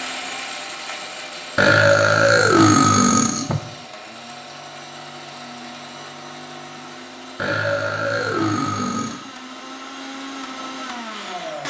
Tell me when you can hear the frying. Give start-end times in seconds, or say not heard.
not heard.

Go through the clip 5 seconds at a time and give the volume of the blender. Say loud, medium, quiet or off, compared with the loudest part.
loud, medium, loud.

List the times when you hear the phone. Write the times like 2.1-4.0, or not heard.
not heard.